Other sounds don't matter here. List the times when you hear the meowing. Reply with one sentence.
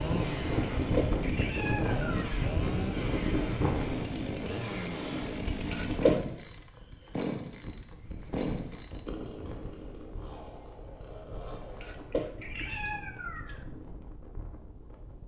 The meowing can be heard from 0.8 to 2.5 s, from 5.6 to 6.2 s and from 11.7 to 13.7 s.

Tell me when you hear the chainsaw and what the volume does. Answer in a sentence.
The chainsaw can be heard from 0.0 to 12.1 s, getting quieter.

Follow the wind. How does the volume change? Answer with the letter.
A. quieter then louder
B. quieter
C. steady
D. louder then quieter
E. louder
B.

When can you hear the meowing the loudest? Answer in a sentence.
The volume of the meowing peaks at 6 seconds.